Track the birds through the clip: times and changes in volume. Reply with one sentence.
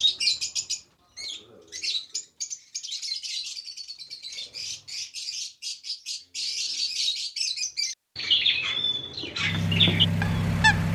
You can hear the birds from 0.0 to 10.9 s, getting louder.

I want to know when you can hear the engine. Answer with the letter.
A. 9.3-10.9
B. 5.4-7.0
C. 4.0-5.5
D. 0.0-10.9
A.